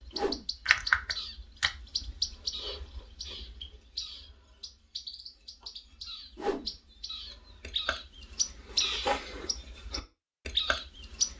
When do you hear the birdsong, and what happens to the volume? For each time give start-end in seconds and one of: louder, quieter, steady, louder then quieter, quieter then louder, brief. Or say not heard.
0.0-11.3 quieter then louder.